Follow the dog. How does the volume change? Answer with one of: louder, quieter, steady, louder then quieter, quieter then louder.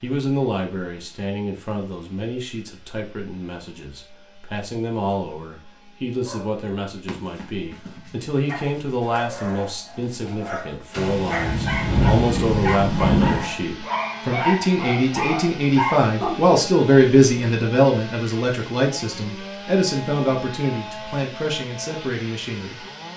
louder.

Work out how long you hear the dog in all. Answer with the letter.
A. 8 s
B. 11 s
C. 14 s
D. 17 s
B.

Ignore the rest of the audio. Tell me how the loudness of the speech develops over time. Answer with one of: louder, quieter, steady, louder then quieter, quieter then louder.
louder then quieter.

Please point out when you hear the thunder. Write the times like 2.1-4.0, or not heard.
10.9-13.6.